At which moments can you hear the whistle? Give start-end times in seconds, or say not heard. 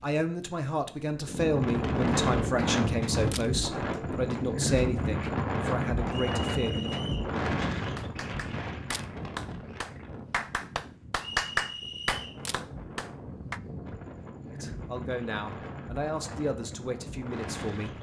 6.0-7.3, 11.2-12.4.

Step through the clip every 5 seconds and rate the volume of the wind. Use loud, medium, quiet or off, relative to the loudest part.
loud, loud, quiet, medium.